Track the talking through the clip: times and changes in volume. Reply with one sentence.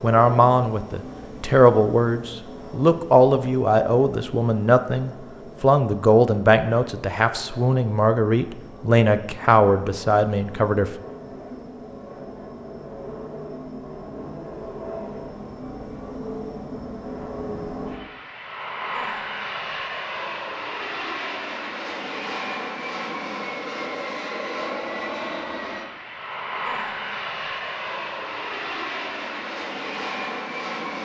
You can hear the talking from 0.0 to 10.9 s, at a steady volume.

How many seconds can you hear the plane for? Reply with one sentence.
You can hear the plane for 31 seconds altogether.